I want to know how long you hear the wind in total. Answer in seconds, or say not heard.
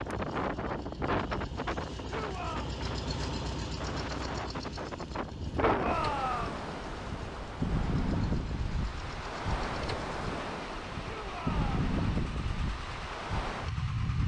14 s.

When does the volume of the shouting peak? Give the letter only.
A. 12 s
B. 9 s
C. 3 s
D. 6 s
D.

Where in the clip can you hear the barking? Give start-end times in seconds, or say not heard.
not heard.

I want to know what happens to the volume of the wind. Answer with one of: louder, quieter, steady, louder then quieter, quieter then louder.
steady.